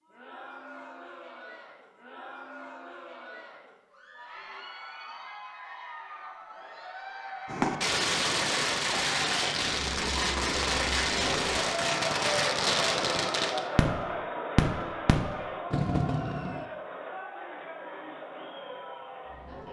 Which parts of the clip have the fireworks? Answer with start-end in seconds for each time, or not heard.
7.5-16.6.